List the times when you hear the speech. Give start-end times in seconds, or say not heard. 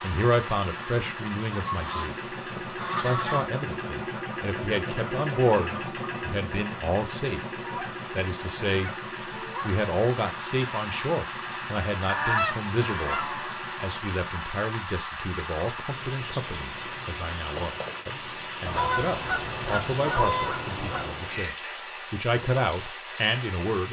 0.0-2.1, 3.0-7.4, 8.1-8.9, 9.6-23.8.